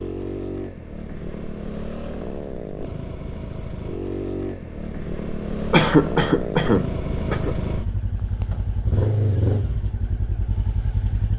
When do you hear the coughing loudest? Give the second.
6 s.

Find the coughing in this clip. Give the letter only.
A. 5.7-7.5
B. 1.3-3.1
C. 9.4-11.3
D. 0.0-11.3
A.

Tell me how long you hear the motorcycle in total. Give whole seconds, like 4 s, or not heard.
11 s.